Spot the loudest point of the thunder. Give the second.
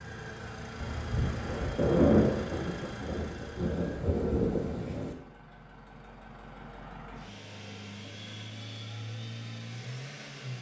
2 s.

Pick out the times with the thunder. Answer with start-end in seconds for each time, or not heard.
0.8-5.2.